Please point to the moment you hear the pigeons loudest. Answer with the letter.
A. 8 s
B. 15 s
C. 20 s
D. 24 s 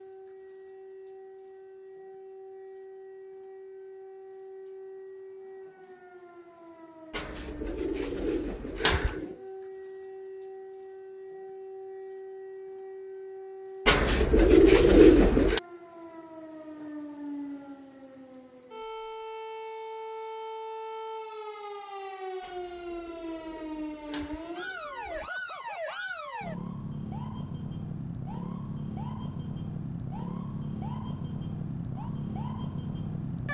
B.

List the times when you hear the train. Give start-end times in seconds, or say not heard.
not heard.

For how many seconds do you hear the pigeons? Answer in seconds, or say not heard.
7 s.